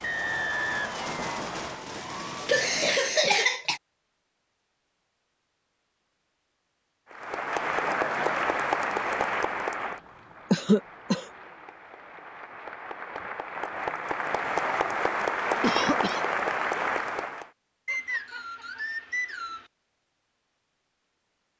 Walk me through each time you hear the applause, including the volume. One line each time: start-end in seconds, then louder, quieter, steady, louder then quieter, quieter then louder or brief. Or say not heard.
0.0-1.8 brief
7.1-17.5 quieter then louder.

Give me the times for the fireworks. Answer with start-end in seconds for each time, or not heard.
0.0-3.2.